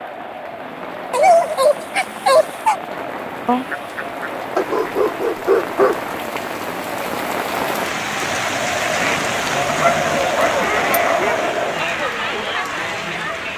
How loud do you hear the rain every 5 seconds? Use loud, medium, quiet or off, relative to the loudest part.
medium, loud, loud.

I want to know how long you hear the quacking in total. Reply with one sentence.
You can hear the quacking for 4 seconds altogether.